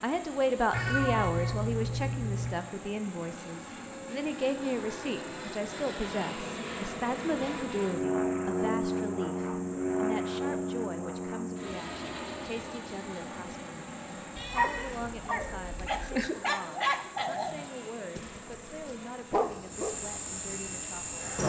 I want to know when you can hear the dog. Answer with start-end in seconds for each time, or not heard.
14.3-19.9.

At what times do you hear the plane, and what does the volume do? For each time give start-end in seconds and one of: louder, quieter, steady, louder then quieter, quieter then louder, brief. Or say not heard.
0.0-21.4 louder then quieter.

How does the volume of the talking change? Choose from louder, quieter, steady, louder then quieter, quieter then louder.
quieter.